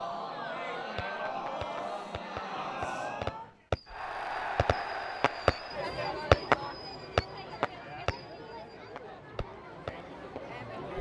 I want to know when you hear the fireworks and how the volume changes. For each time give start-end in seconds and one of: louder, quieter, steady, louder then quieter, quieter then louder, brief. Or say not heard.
0.8-10.4 louder then quieter.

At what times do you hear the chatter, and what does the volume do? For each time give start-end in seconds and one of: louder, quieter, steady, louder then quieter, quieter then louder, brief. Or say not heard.
0.0-10.9 quieter.